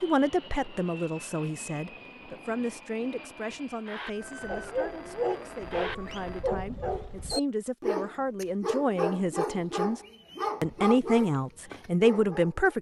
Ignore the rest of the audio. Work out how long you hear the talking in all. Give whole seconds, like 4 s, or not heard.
12 s.